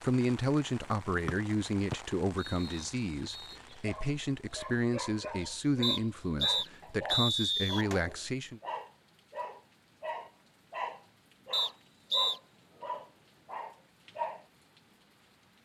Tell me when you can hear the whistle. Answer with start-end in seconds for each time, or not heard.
1.2-3.5, 5.8-7.8, 11.5-12.4.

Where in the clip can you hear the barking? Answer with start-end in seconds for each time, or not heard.
3.3-14.4.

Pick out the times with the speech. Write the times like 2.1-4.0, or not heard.
0.0-8.6.